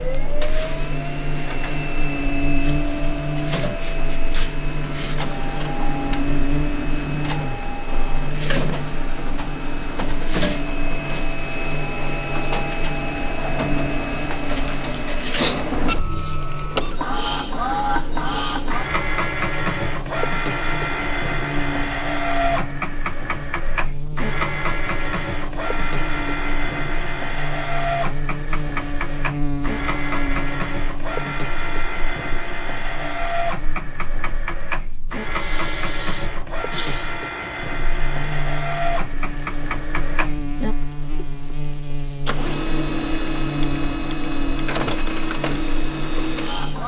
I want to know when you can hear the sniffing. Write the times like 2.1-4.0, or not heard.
14.9-15.6, 35.3-37.1.